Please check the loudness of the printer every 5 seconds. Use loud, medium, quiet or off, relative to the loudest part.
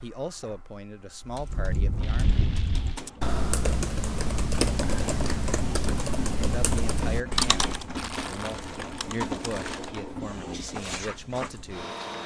medium, loud, loud.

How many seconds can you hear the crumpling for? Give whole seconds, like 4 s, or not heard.
3 s.